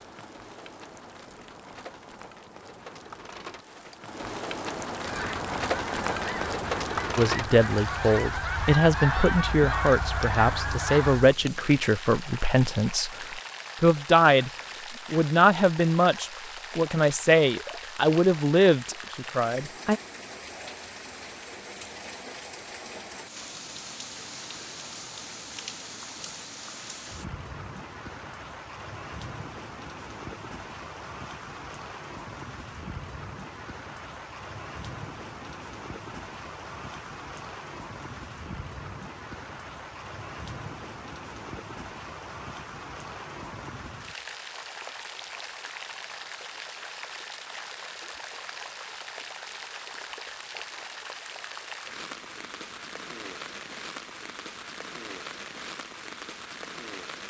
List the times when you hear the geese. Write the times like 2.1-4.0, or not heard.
5.0-11.3.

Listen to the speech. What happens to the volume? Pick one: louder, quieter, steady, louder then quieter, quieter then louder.
steady.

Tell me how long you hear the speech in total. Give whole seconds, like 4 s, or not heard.
12 s.